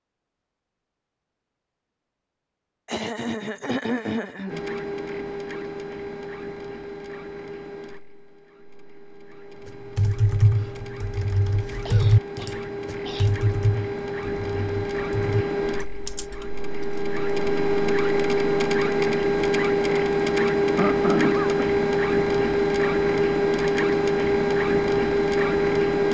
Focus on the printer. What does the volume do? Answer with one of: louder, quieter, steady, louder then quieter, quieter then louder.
louder.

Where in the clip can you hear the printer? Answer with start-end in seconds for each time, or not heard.
4.5-26.0.